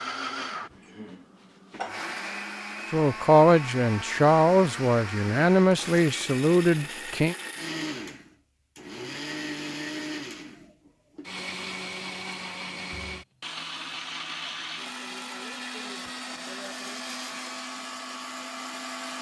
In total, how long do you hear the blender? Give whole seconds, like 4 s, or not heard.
19 s.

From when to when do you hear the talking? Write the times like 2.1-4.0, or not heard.
2.9-7.3.